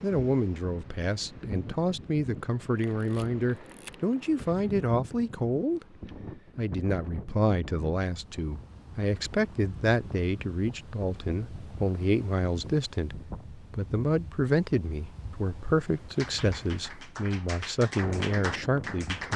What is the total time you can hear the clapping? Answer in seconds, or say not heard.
3 s.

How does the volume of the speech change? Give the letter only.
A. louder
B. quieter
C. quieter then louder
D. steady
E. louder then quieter
D.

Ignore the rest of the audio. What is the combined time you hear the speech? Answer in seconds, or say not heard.
19 s.